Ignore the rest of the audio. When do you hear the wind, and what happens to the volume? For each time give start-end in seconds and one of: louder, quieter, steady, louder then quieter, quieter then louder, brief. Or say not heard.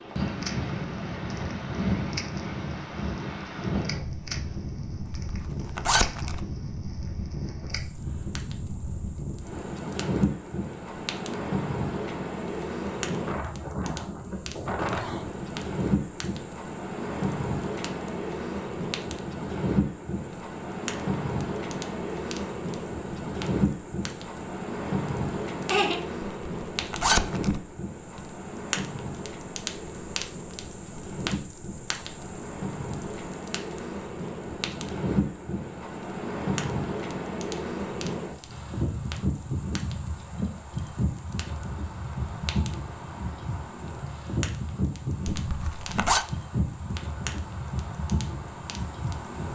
0.0-49.5 steady.